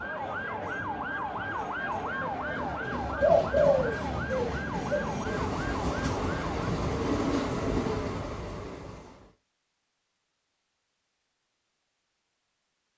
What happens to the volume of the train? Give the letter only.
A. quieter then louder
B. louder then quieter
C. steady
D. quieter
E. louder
E.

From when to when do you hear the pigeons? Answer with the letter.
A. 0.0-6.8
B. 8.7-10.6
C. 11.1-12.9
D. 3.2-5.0
D.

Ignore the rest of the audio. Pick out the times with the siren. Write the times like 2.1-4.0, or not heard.
0.0-6.8.